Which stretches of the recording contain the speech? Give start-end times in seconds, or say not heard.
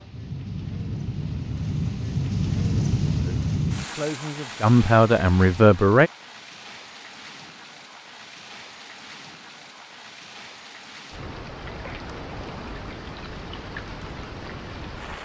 3.2-6.1.